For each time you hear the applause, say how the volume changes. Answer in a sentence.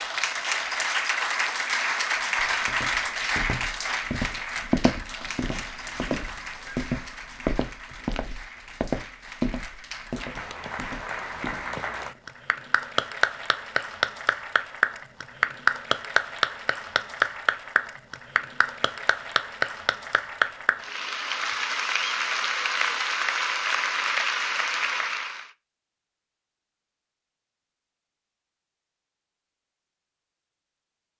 The applause can be heard from 0.0 to 25.4 s, getting quieter then louder.